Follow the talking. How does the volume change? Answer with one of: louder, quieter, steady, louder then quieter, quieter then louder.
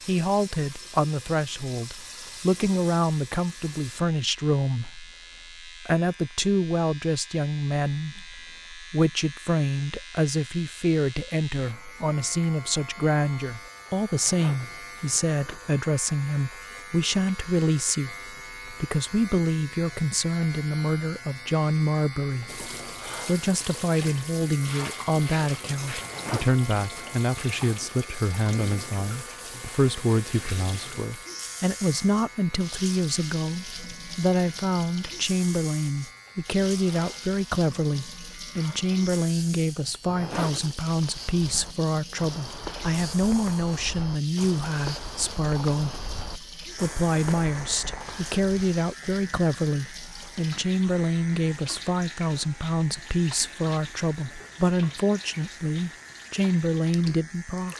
steady.